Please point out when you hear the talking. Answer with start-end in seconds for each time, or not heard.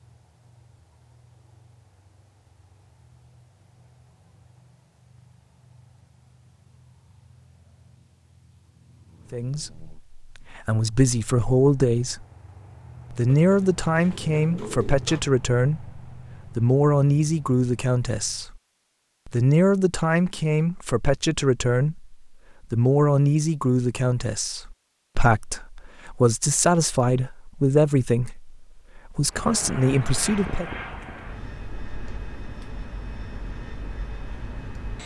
9.3-12.2, 13.1-18.6, 19.2-30.6.